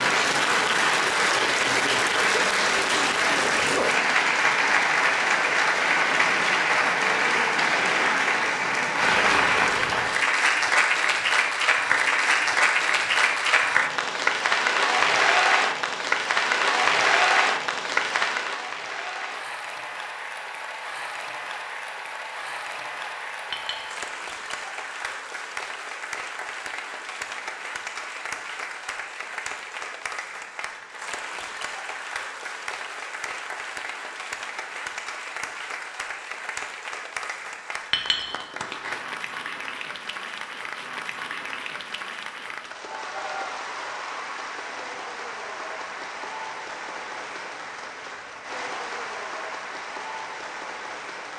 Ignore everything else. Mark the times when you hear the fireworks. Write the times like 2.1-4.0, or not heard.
not heard.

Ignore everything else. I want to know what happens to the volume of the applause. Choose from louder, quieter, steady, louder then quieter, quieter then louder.
quieter.